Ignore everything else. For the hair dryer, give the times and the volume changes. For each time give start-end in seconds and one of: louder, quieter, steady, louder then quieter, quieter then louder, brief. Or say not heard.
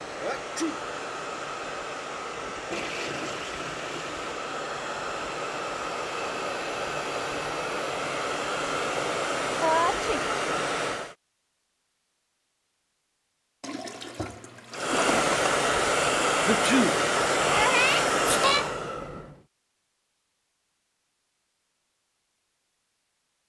0.0-11.2 louder
14.7-19.4 steady.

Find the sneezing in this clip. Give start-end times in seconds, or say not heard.
0.1-0.8, 9.6-10.2, 16.4-18.7.